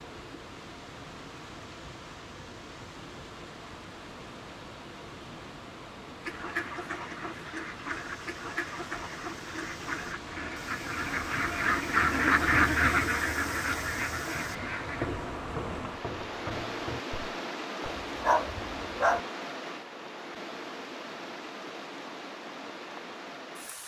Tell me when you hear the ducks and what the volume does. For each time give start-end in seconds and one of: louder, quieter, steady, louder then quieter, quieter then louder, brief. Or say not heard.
6.2-15.1 louder then quieter.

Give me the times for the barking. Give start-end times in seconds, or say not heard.
17.8-19.2.